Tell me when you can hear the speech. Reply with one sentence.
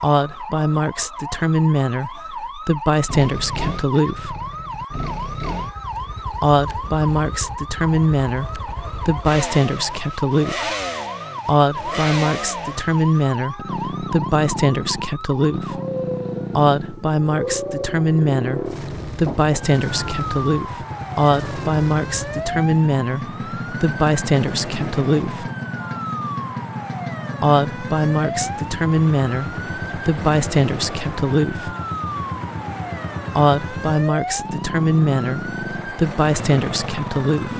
The speech can be heard from 0.0 to 4.3 s, from 6.4 to 10.7 s, from 11.4 to 15.8 s, from 16.6 to 25.5 s, from 27.4 to 31.8 s and from 33.4 to 37.5 s.